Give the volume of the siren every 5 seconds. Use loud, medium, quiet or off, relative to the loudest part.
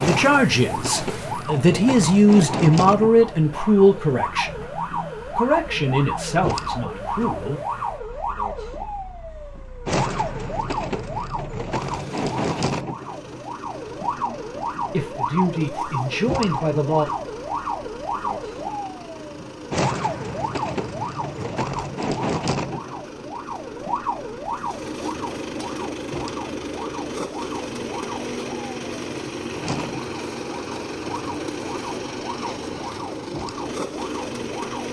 loud, loud, loud, loud, loud, medium, medium.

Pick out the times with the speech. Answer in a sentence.
The speech can be heard from 0.0 to 7.6 s and from 14.9 to 17.1 s.